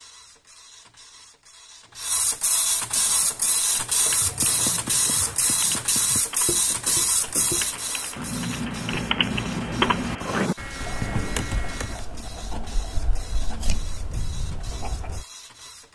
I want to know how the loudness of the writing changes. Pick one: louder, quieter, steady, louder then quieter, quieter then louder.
louder then quieter.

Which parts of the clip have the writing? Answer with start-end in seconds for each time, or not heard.
4.2-15.2.